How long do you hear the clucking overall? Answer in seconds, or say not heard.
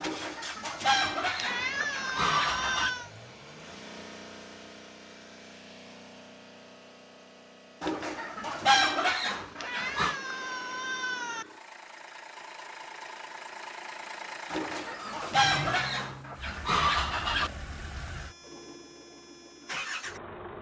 8 s.